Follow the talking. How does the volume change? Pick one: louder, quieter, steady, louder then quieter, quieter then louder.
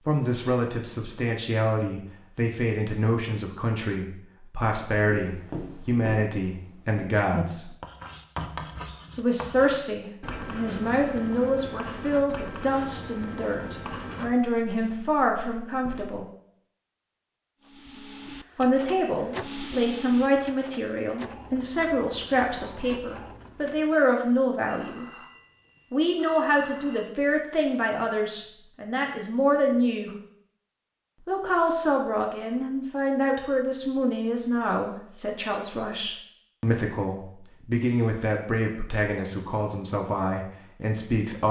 steady.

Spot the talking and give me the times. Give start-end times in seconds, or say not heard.
0.1-7.8, 9.2-16.2, 18.6-25.1, 25.9-30.1, 31.2-41.4.